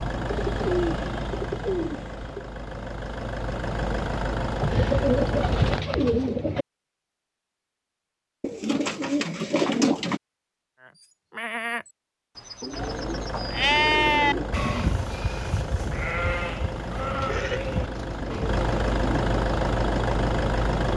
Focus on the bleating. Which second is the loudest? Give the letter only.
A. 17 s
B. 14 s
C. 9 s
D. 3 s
B.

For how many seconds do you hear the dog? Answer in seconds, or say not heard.
not heard.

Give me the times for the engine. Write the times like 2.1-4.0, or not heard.
0.0-5.8, 12.7-20.9.